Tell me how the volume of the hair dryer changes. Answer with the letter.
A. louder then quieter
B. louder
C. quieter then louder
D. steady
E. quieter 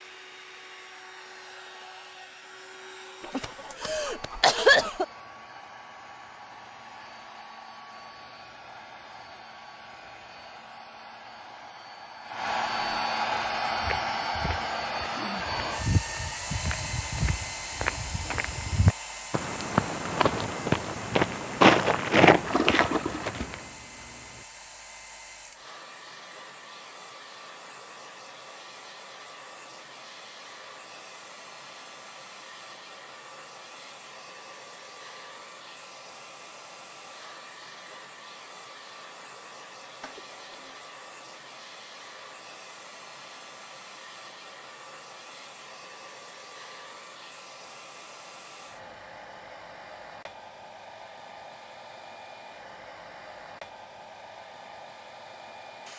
A.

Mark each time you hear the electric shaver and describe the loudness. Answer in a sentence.
You can't hear the electric shaver here.